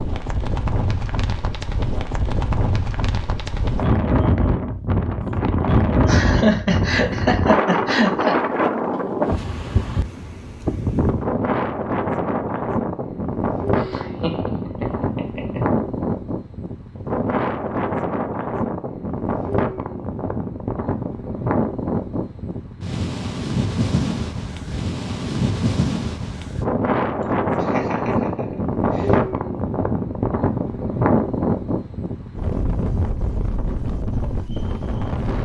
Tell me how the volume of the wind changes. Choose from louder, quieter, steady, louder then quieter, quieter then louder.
steady.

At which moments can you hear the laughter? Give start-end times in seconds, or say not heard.
6.0-8.3, 13.8-15.6, 27.2-29.2.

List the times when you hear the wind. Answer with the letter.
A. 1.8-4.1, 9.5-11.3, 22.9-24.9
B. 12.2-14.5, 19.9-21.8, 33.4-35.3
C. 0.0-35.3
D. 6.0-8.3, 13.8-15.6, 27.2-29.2
C.